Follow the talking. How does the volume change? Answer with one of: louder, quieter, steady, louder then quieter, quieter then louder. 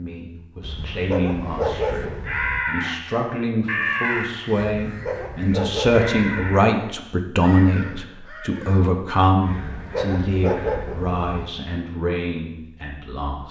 louder then quieter.